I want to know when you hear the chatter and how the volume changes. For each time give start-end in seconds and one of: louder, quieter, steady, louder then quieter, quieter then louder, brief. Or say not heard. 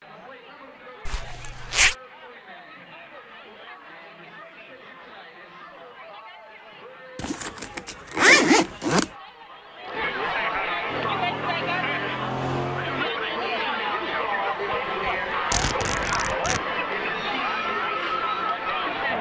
0.0-19.1 louder.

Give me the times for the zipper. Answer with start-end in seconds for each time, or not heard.
1.1-1.9, 7.2-9.1, 14.7-16.6.